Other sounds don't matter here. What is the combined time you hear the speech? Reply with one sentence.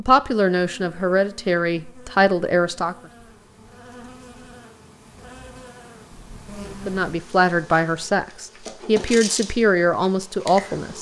The speech can be heard for 7 seconds in total.